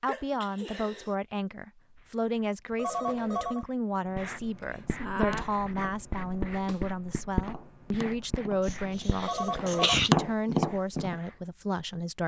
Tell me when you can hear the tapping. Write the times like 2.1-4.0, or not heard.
4.8-11.2.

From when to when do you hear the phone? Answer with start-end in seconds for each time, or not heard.
2.8-3.6, 9.2-10.0.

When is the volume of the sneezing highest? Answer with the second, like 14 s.
10 s.